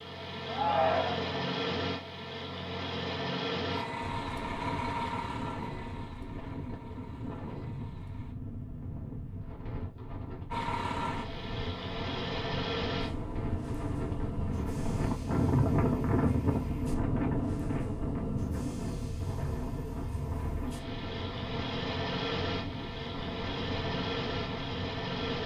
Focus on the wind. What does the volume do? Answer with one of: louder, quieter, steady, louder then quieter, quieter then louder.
louder then quieter.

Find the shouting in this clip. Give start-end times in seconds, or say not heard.
0.5-1.4.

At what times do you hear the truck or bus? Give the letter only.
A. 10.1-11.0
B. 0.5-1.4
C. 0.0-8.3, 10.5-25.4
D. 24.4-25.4
C.